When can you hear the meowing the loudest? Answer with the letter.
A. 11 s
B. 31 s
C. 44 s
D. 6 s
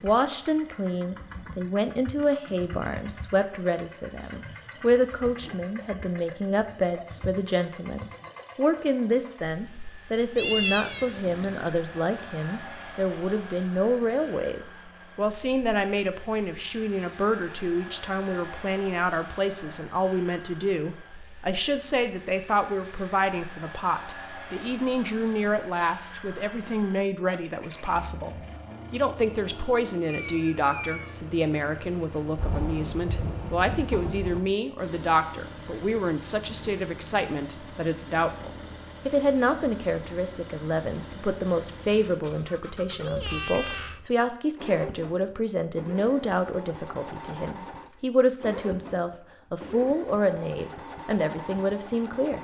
A.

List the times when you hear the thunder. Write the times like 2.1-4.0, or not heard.
32.4-34.4.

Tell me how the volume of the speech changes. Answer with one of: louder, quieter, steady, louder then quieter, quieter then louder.
steady.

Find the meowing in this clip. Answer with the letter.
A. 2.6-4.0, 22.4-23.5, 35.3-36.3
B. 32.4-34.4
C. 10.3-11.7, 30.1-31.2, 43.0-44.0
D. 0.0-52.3
C.